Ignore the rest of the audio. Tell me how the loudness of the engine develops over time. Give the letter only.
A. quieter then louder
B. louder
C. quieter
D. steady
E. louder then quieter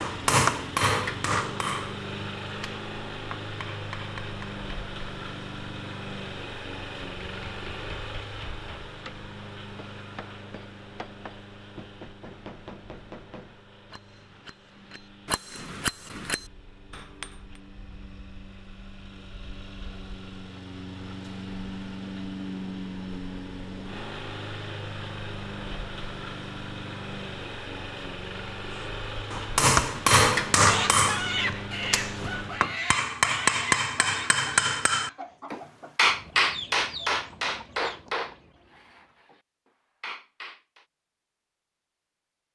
A.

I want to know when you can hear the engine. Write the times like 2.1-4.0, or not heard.
0.0-32.7.